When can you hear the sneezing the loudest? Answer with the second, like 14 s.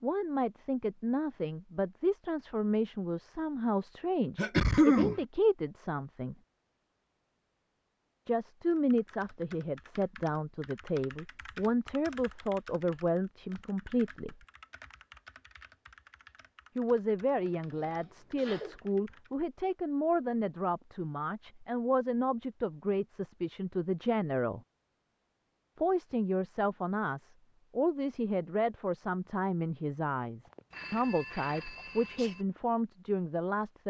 5 s.